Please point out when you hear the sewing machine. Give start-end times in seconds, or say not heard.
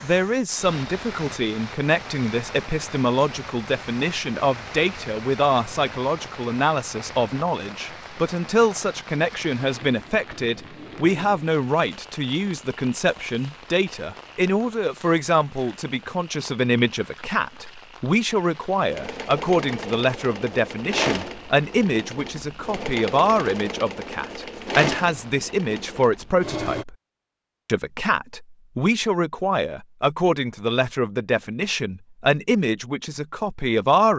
18.8-26.9.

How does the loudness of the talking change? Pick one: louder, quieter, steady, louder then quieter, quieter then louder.
steady.